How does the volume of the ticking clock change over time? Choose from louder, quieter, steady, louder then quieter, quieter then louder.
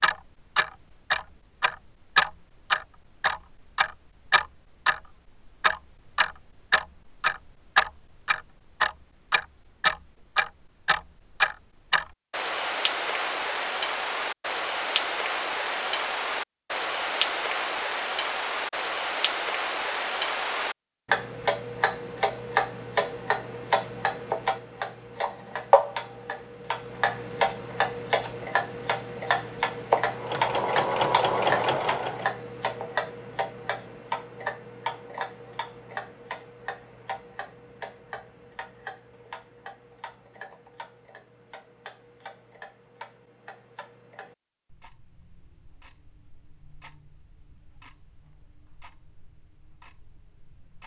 quieter.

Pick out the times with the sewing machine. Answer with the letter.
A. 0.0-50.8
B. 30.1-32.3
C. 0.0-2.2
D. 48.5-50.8
B.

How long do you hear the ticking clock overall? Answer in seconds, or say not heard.
51 s.